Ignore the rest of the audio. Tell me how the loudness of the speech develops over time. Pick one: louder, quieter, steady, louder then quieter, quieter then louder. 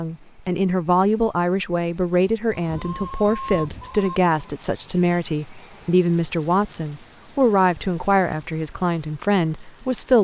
steady.